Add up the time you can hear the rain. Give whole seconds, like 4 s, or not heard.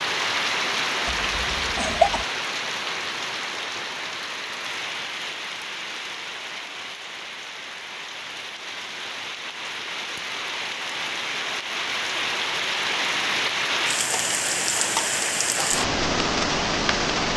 17 s.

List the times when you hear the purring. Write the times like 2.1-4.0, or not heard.
not heard.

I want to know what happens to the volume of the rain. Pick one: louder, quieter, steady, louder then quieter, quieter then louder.
quieter then louder.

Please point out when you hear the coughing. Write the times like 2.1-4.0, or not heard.
1.1-2.2.